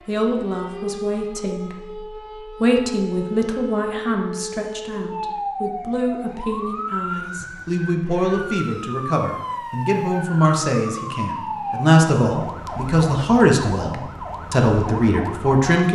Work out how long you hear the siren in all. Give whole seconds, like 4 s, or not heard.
16 s.